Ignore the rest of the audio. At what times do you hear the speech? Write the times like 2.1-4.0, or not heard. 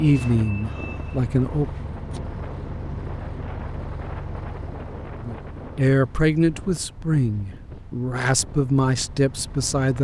0.0-1.6, 5.2-9.9.